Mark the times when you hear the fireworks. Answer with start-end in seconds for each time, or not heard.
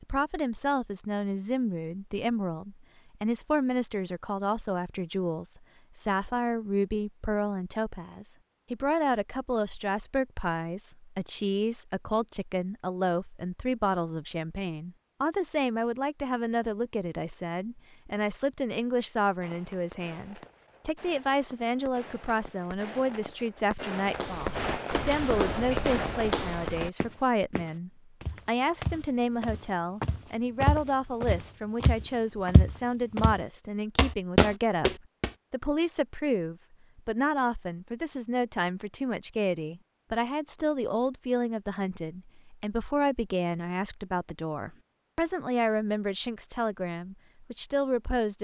19.4-26.8.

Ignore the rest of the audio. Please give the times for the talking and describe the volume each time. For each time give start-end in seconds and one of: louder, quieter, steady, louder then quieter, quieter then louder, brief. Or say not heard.
0.0-48.3 steady.